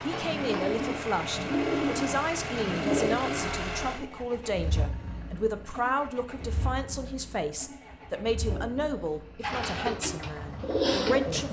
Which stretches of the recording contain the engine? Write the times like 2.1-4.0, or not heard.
0.0-11.4.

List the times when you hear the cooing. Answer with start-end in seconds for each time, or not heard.
0.0-3.5, 8.4-11.4.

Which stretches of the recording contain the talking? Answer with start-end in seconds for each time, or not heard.
0.0-11.4.